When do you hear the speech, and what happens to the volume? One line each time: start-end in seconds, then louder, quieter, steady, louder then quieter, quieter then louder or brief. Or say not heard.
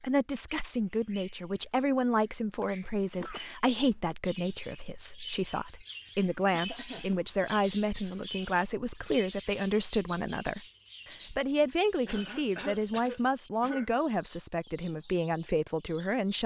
0.0-16.4 steady.